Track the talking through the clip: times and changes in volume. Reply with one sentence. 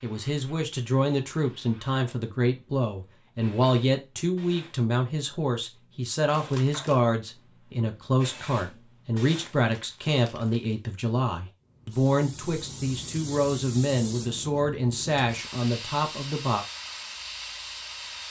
You can hear the talking from 0.0 to 16.6 s, at a steady volume.